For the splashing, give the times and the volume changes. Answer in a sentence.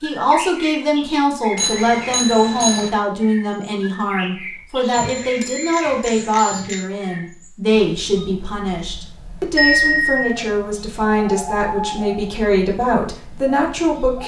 You can't hear the splashing here.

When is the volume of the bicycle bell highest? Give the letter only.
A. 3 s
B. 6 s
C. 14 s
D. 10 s
D.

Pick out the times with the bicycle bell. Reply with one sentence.
The bicycle bell can be heard from 1.6 to 2.9 s, from 4.9 to 6.8 s and from 9.6 to 10.3 s.